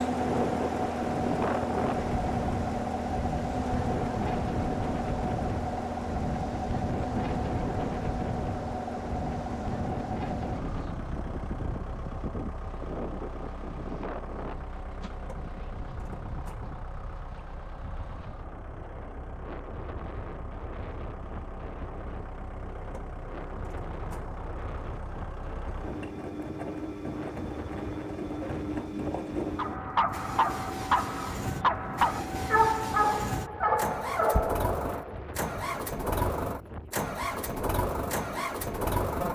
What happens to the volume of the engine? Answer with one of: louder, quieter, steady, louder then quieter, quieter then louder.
quieter then louder.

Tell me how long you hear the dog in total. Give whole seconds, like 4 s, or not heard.
6 s.